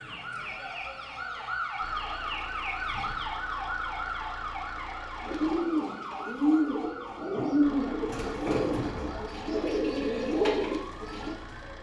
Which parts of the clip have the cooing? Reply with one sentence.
You can hear the cooing from 5.2 to 11.3 s.